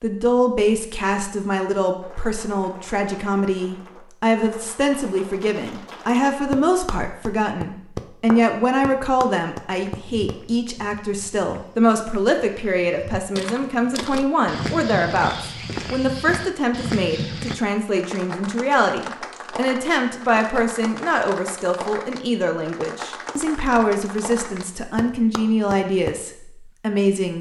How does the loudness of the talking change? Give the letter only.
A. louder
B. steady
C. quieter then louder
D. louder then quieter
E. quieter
B.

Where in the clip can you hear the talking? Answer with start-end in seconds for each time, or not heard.
0.0-27.3.